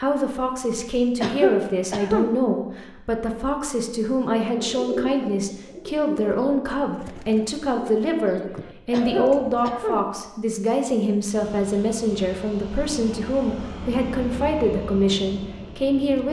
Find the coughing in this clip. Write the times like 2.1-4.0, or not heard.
1.2-2.3, 8.9-10.1.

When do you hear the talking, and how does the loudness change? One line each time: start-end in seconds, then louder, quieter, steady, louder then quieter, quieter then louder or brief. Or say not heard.
0.0-16.2 steady.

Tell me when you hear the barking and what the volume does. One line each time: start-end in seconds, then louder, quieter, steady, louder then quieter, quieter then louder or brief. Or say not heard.
not heard.